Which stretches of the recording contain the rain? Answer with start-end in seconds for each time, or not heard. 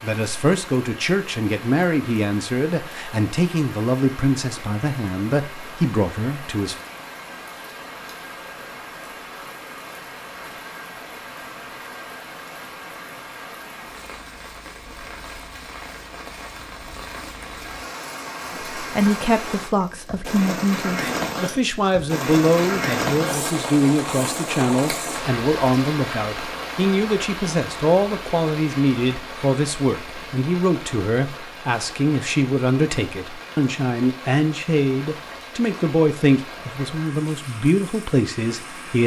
0.0-39.0.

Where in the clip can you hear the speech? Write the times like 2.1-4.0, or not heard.
0.0-6.8, 18.8-39.0.